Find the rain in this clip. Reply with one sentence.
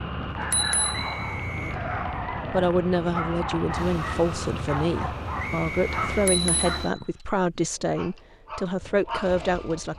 You can hear the rain from 0.0 to 6.3 s.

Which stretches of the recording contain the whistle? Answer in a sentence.
You can hear the whistle from 0.9 to 1.8 s and from 5.3 to 6.4 s.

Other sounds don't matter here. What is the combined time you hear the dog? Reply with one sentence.
The dog can be heard for 10 seconds in total.